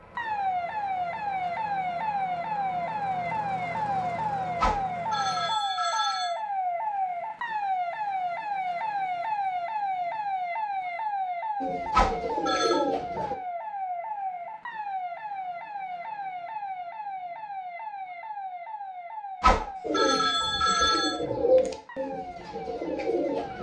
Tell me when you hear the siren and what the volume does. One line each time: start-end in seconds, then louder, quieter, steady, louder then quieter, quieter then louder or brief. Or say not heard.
0.1-23.5 quieter.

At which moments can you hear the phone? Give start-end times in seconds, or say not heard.
4.6-6.3, 11.9-12.8, 19.4-21.1.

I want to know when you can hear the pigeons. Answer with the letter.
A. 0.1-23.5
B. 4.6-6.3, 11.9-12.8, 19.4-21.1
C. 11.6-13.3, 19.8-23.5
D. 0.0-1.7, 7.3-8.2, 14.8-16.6
C.